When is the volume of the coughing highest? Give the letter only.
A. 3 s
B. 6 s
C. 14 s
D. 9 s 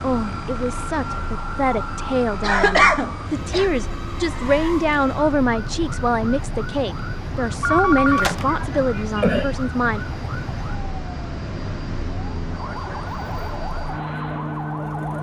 A.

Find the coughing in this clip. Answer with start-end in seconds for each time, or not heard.
2.4-3.7, 8.1-9.6.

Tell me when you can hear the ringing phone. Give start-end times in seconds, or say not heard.
7.6-8.5.